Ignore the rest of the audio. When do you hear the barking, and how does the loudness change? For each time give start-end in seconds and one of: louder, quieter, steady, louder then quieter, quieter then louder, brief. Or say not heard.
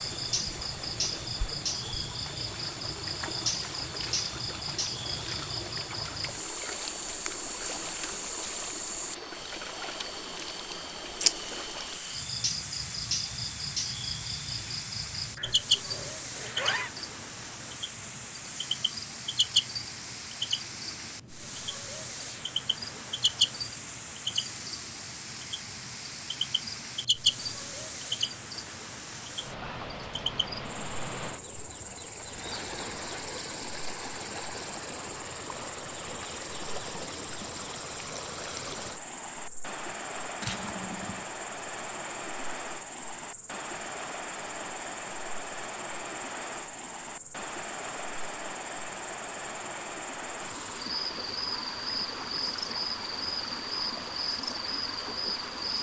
not heard.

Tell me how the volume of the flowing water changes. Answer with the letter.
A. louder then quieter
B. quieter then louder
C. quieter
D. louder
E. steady
E.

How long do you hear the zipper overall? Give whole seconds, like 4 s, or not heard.
3 s.